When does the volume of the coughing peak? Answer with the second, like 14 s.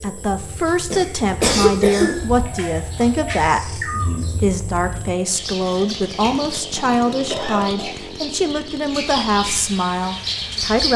2 s.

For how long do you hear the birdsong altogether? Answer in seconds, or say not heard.
11 s.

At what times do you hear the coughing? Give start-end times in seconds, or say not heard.
0.9-2.1, 6.1-7.9.